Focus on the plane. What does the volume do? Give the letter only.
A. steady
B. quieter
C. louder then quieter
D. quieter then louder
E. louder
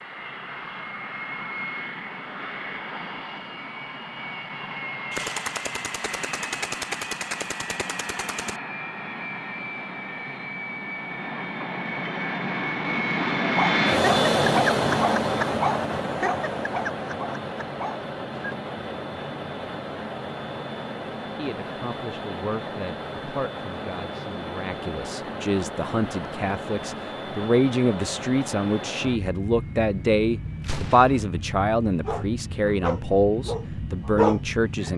C.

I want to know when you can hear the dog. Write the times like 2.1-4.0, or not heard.
13.6-18.6, 32.0-34.9.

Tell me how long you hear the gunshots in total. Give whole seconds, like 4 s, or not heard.
4 s.